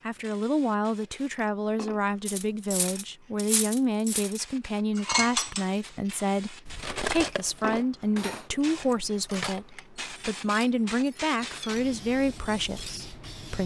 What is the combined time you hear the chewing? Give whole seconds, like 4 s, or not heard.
not heard.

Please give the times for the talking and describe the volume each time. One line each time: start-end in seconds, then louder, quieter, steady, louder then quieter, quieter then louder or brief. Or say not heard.
0.1-13.6 steady.